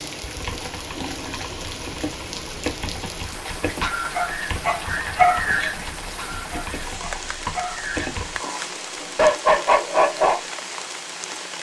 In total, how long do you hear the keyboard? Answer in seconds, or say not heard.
8 s.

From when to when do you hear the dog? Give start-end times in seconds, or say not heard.
3.6-10.4.